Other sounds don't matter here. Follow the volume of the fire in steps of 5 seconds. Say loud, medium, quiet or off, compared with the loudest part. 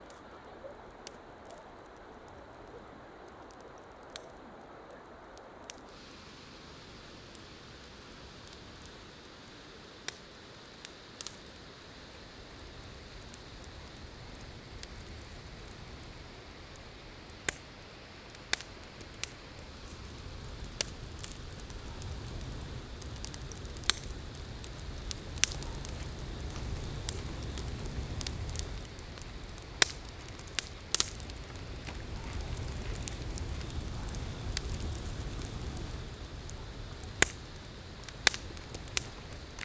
quiet, quiet, quiet, quiet, quiet, loud, medium, loud.